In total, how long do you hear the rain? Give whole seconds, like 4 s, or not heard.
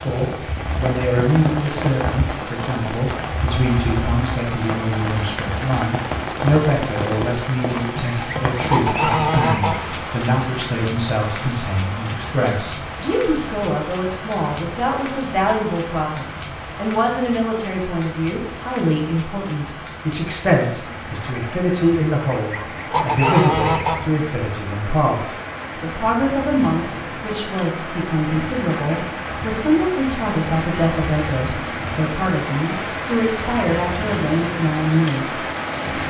36 s.